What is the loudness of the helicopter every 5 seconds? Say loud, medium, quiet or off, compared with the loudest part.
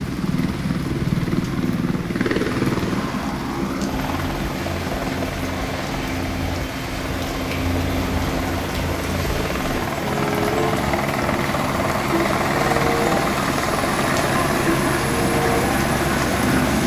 loud, medium, loud, loud.